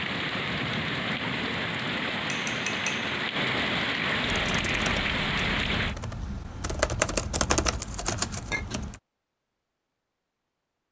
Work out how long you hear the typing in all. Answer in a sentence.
The typing can be heard for 5 seconds in total.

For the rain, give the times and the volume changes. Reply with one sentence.
You can hear the rain from 0.0 to 6.0 s, at a steady volume.